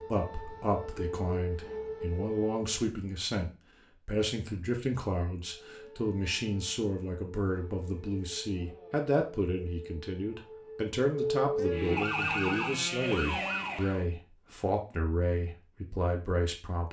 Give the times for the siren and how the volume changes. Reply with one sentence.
You can hear the siren briefly from 0.0 to 2.9 s; and from 5.6 to 14.1 s, getting louder.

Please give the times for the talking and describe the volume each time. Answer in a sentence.
You can hear the talking from 0.1 to 16.8 s, at a steady volume.